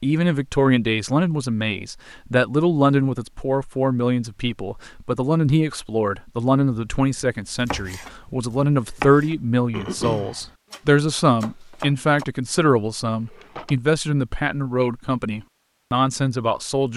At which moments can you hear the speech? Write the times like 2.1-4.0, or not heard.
0.0-16.9.